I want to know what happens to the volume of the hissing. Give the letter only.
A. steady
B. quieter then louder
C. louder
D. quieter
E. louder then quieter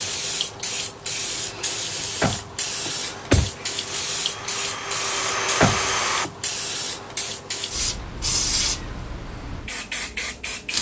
A.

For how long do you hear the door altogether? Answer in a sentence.
The door can be heard for 2 seconds in total.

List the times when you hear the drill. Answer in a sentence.
The drill can be heard from 3.0 to 6.3 s.